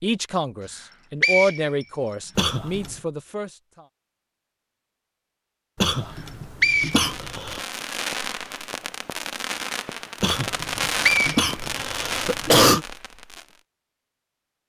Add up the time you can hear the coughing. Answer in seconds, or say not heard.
5 s.